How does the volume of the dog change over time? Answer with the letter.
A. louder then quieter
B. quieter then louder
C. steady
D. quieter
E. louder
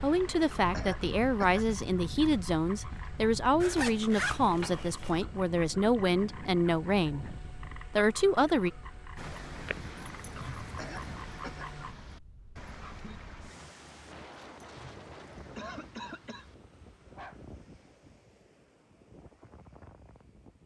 D.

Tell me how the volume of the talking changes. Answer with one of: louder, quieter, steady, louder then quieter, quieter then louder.
steady.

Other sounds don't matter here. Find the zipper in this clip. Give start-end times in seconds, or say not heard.
3.6-5.2.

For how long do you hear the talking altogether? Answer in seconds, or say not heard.
9 s.